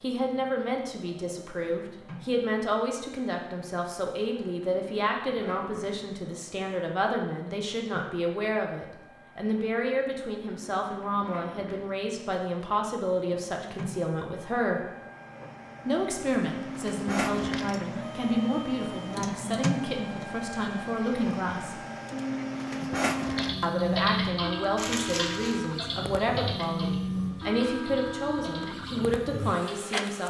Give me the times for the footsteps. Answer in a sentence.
The footsteps can't be heard in this clip.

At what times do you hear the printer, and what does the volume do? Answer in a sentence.
The printer can be heard from 0.0 to 30.2 s, getting louder.